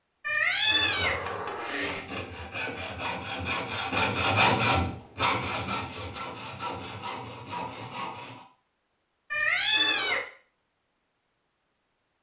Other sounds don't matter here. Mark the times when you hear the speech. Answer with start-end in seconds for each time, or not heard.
not heard.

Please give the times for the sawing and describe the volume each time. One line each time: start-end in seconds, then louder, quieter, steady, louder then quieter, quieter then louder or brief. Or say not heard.
0.6-8.4 louder then quieter.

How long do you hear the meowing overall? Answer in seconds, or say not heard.
3 s.